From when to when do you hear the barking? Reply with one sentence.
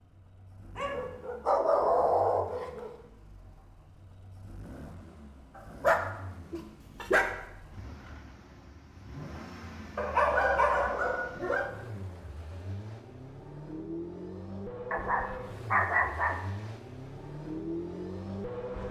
The barking can be heard from 0.8 to 3.0 s, from 5.5 to 7.4 s, from 9.9 to 11.7 s and from 14.9 to 16.4 s.